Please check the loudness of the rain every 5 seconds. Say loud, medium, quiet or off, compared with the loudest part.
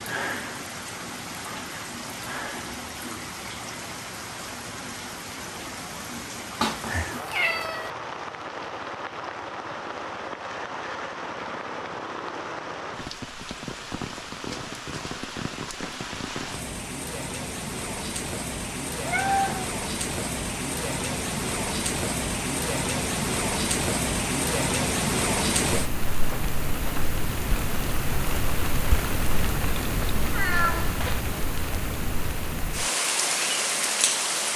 medium, medium, medium, medium, loud, loud, loud.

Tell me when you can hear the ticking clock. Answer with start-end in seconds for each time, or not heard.
not heard.